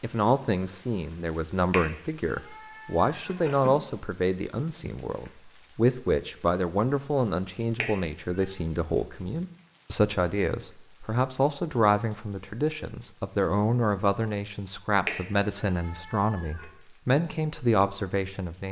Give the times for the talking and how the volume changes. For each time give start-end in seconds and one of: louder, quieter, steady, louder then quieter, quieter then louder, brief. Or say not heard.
0.0-18.6 steady.